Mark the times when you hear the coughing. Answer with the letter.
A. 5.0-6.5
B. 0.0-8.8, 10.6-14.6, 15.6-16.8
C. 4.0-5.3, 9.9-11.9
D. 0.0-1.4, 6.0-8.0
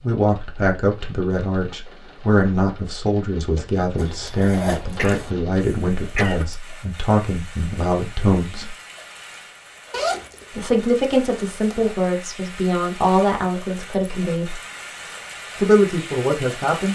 A.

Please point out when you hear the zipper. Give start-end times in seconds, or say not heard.
4.0-5.3, 9.9-11.9.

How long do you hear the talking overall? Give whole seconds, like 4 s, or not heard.
14 s.